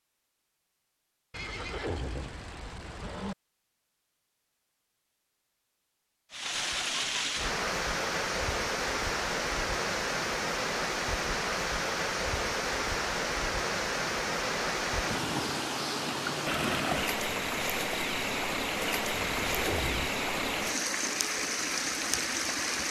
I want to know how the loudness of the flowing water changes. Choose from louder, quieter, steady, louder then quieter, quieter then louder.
steady.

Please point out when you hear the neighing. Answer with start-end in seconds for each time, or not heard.
1.3-3.4, 19.1-20.1.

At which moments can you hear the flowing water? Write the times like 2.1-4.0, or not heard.
6.3-22.8.